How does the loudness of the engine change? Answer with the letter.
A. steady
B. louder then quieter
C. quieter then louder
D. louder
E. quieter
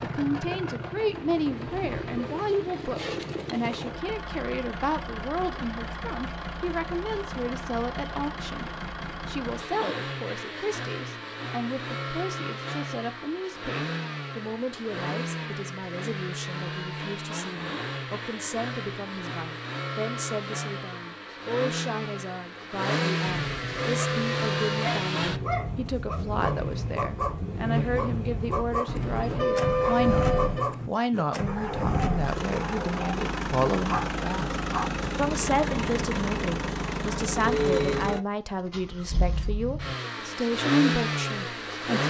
D.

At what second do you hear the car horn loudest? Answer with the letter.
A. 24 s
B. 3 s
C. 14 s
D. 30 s
D.